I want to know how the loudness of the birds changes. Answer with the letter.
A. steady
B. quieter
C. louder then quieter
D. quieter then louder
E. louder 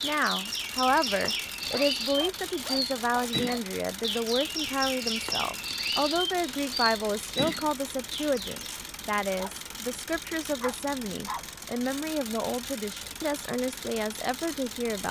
A.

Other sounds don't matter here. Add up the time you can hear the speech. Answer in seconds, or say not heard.
15 s.